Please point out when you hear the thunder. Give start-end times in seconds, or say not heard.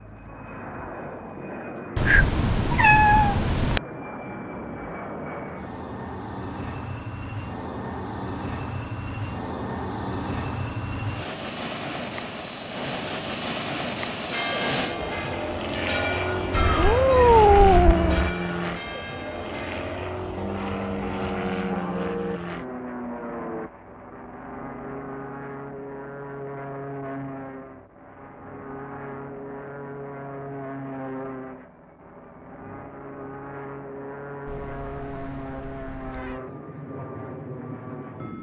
not heard.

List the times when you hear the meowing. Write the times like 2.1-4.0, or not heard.
1.9-3.8, 16.5-18.4, 34.5-36.4.